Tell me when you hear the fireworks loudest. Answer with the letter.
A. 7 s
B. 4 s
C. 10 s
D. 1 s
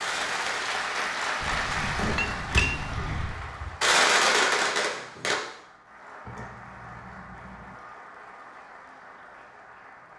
B.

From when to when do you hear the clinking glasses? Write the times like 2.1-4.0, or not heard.
1.4-3.4, 6.2-7.8.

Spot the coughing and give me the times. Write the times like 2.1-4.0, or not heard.
not heard.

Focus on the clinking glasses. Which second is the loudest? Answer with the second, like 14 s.
3 s.